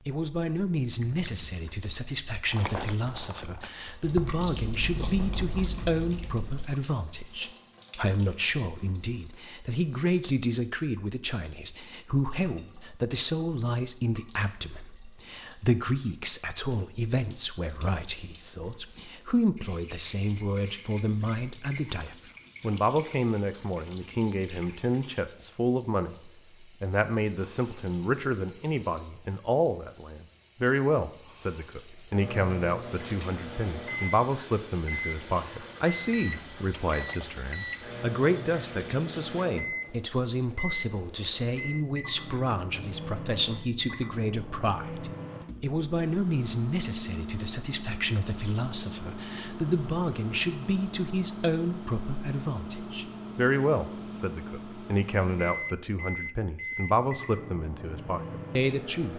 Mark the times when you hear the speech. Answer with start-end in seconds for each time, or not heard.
0.1-59.1.